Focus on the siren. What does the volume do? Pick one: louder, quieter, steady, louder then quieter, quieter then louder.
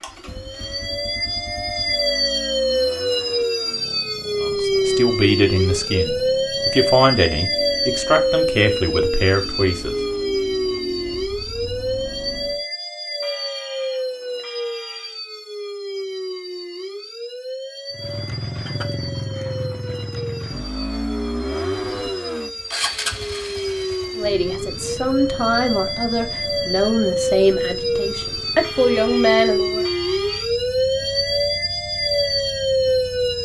quieter then louder.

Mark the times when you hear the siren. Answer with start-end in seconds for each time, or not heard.
0.0-33.4.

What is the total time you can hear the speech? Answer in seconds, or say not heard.
11 s.